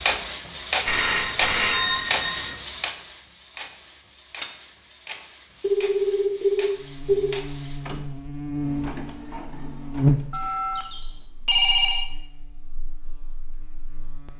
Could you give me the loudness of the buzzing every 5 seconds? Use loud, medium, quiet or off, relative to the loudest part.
off, medium, loud.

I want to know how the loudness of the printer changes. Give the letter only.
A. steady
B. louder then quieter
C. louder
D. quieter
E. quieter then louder
D.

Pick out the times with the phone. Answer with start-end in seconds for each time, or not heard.
0.8-2.5, 5.6-7.4, 10.3-12.1.